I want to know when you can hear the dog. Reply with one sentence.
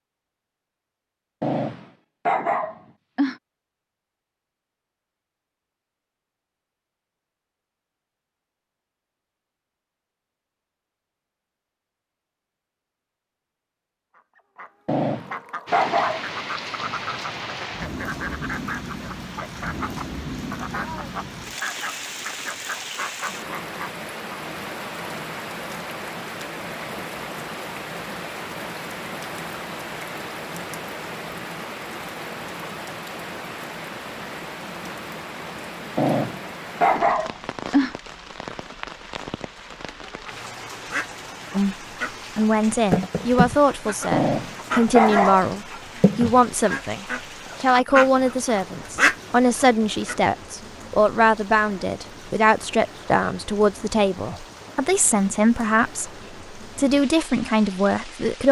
You can hear the dog from 1.4 to 3.4 s, from 14.8 to 16.2 s, from 36.0 to 38.0 s and from 44.1 to 45.5 s.